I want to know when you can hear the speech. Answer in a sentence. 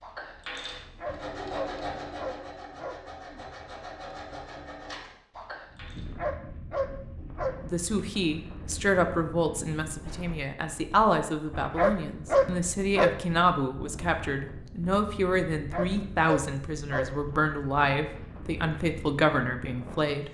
The speech can be heard from 7.6 to 20.2 s.